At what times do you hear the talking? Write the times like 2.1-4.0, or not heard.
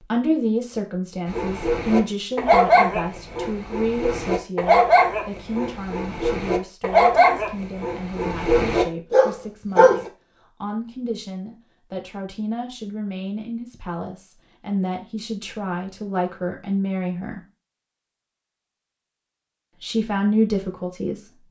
0.0-17.4, 19.8-21.2.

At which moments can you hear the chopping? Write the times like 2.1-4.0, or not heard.
not heard.